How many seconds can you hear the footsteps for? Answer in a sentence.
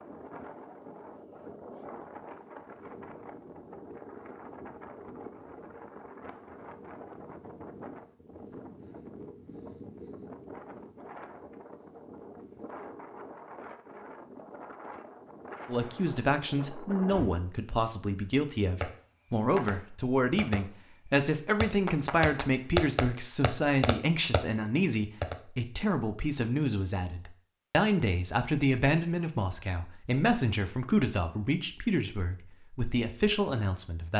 You can't hear the footsteps here.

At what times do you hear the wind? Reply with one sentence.
The wind can be heard from 0.0 to 17.4 s.